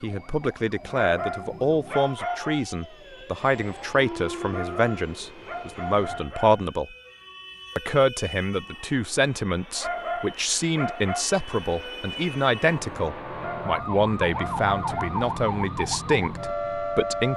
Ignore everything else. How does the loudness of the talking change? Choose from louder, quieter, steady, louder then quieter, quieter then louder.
steady.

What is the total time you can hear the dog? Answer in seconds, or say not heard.
7 s.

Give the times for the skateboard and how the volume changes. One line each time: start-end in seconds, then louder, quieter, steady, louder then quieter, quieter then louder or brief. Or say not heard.
not heard.